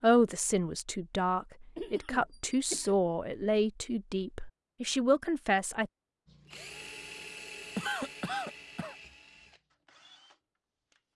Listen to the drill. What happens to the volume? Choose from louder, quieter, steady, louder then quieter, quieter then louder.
quieter.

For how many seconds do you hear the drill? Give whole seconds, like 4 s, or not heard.
5 s.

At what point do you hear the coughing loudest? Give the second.
8 s.